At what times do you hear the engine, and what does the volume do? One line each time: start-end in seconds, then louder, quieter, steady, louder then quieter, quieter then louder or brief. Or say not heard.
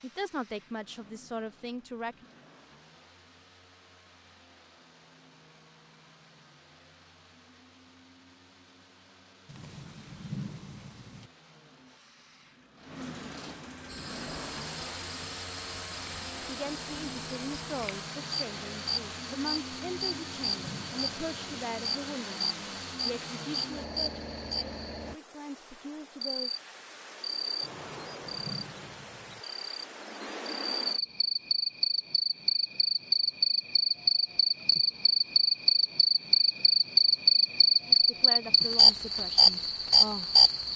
0.0-25.2 louder.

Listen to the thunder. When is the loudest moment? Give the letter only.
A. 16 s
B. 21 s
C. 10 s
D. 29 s
C.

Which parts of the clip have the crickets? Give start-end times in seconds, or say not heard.
13.8-40.7.